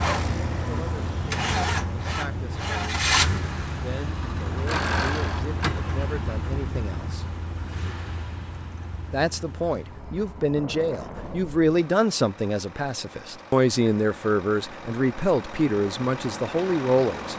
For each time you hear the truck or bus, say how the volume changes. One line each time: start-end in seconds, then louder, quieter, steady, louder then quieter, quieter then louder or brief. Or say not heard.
0.0-17.3 quieter then louder.